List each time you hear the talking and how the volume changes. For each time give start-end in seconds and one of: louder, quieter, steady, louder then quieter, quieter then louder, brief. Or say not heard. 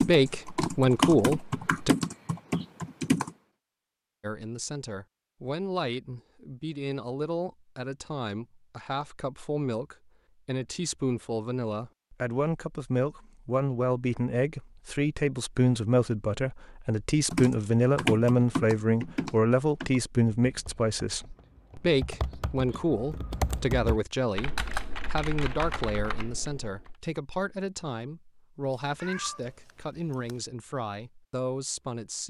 0.0-1.9 brief
4.2-32.2 louder then quieter.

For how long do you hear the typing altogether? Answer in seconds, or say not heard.
13 s.